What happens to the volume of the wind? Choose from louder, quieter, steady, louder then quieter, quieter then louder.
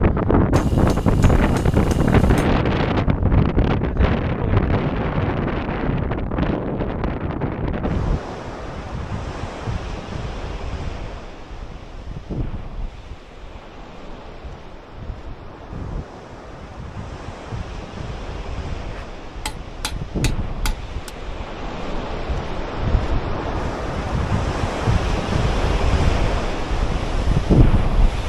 quieter then louder.